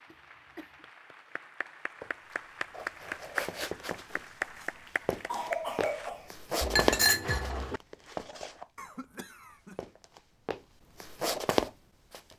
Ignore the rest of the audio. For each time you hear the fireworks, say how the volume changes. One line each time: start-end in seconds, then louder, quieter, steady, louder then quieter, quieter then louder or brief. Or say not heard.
not heard.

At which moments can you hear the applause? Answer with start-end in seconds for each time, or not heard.
0.0-6.1.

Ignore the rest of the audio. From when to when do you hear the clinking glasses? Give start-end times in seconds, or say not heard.
6.6-7.8.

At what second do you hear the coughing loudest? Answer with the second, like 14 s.
6 s.